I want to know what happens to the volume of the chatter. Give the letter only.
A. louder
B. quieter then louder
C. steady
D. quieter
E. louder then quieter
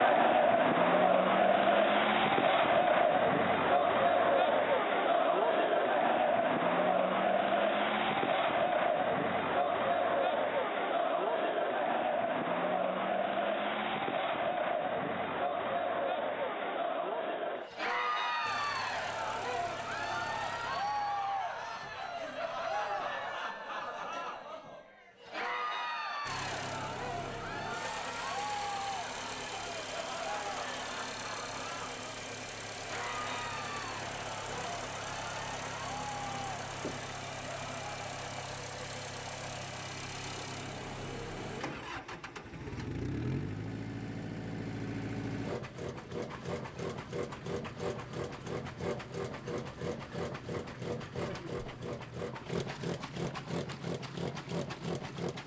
D.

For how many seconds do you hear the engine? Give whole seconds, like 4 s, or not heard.
34 s.